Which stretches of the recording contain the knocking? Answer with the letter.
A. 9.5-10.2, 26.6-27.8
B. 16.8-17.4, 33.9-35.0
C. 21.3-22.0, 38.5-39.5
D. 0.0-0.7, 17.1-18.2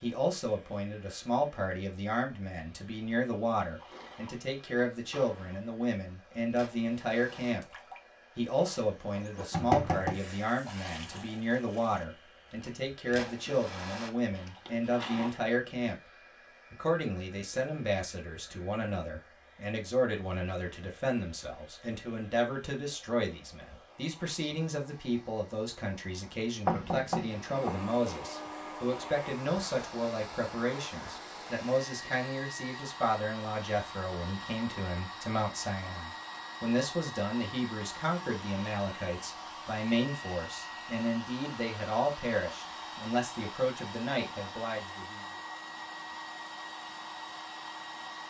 A.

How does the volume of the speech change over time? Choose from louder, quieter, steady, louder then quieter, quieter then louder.
steady.